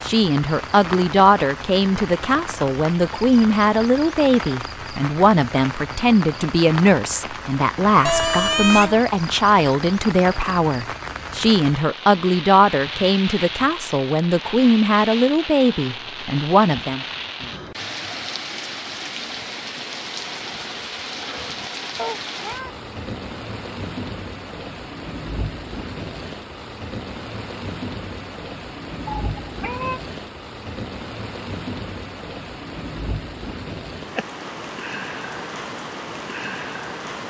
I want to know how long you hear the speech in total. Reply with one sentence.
The speech can be heard for 17 seconds in total.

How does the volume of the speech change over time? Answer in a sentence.
The volume of the speech stays about the same.